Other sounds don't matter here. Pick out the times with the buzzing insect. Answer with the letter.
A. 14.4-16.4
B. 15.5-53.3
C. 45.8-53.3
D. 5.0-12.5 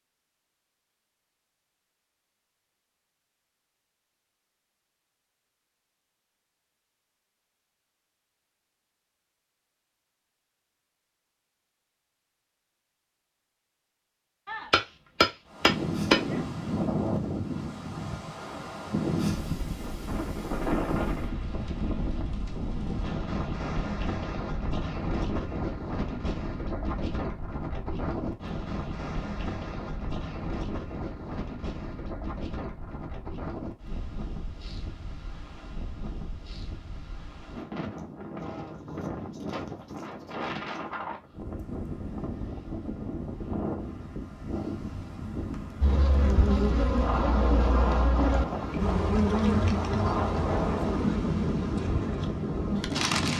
C.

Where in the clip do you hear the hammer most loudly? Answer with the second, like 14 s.
16 s.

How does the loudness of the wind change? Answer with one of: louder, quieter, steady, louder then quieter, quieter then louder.
quieter then louder.